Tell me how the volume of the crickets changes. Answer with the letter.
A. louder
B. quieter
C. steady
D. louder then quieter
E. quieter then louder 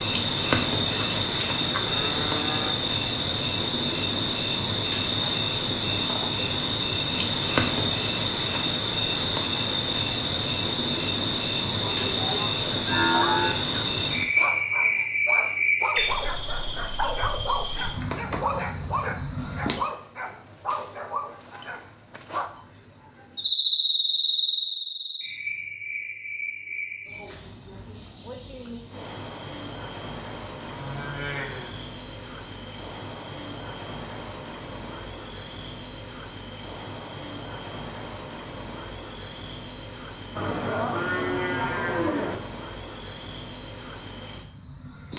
B.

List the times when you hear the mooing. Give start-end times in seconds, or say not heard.
0.9-2.8, 11.8-13.6, 30.6-31.9, 40.4-42.4.